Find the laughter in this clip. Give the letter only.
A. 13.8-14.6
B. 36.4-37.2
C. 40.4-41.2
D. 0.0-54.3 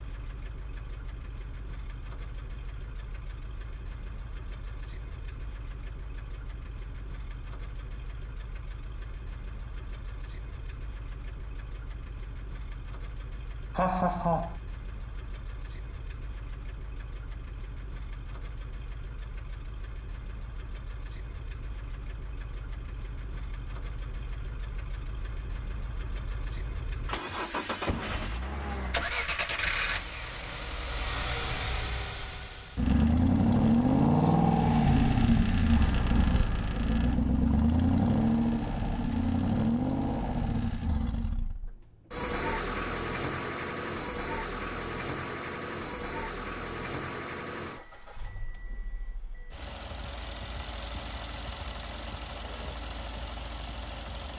A.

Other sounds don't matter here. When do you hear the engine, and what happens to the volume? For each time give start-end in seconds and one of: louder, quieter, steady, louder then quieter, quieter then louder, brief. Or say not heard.
0.0-54.3 louder then quieter.